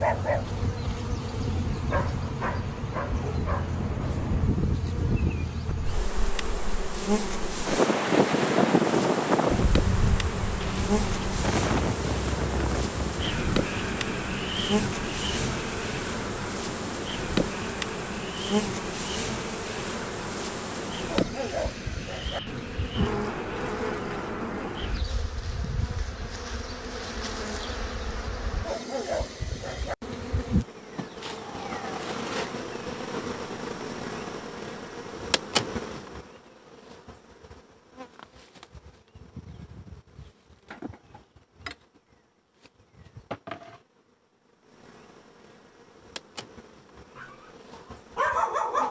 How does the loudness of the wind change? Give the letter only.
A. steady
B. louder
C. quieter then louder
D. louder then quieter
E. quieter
D.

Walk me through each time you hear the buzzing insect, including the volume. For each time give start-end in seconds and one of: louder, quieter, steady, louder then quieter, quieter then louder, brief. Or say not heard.
0.0-48.8 quieter.